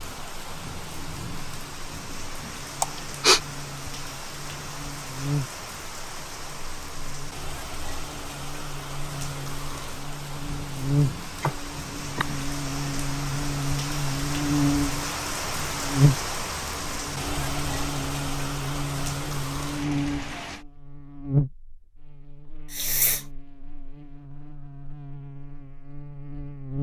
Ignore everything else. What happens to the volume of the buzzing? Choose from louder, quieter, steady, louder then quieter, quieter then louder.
louder then quieter.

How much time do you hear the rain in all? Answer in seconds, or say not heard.
21 s.